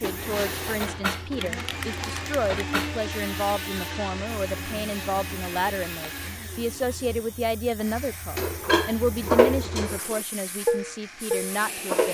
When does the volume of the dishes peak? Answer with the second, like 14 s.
9 s.